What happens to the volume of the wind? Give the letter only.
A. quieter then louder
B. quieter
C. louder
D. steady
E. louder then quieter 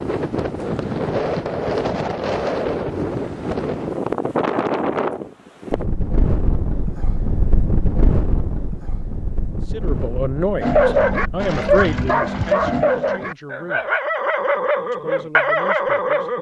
B.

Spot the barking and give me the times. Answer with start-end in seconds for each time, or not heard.
10.6-16.3.